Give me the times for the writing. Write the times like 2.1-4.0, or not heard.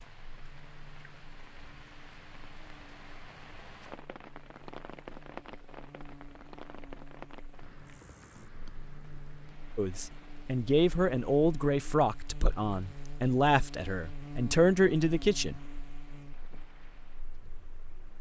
not heard.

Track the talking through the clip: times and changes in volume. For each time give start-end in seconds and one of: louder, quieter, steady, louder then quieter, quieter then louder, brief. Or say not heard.
9.8-15.7 quieter then louder.